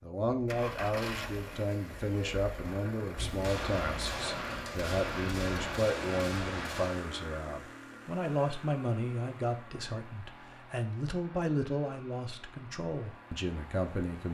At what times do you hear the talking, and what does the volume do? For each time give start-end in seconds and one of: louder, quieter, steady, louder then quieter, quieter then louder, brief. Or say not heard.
0.0-14.2 steady.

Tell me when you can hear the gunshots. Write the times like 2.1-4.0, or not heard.
3.1-7.0.